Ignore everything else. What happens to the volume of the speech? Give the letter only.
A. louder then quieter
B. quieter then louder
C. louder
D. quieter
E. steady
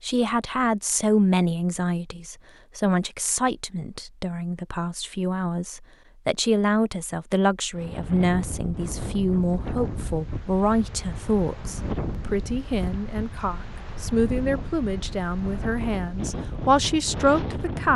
E.